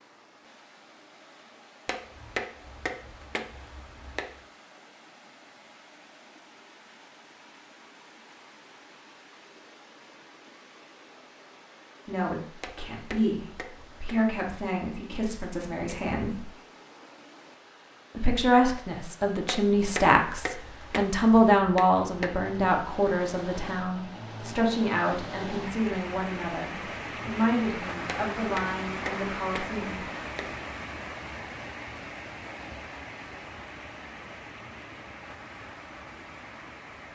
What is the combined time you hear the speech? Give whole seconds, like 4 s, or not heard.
16 s.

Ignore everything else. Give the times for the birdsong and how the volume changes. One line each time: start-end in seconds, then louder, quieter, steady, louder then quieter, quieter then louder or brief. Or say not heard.
not heard.